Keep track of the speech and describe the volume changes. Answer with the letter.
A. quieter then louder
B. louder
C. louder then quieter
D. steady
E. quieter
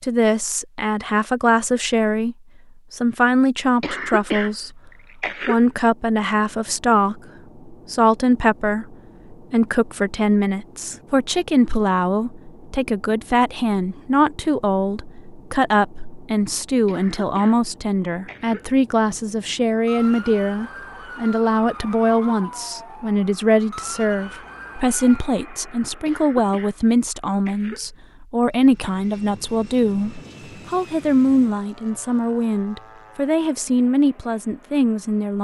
D.